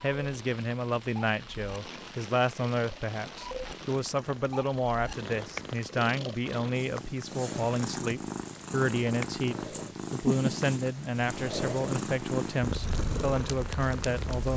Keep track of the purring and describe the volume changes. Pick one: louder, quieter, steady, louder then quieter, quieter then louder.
louder.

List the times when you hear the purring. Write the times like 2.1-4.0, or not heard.
0.1-14.5.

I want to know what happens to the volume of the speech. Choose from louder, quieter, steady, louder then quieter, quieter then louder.
steady.